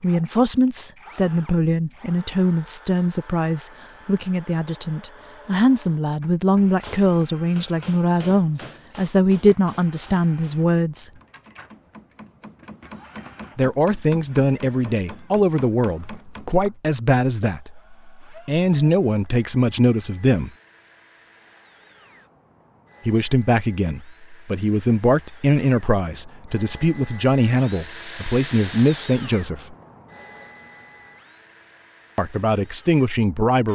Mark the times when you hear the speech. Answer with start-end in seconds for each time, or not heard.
0.0-11.1, 13.6-20.5, 23.1-29.8, 32.1-33.7.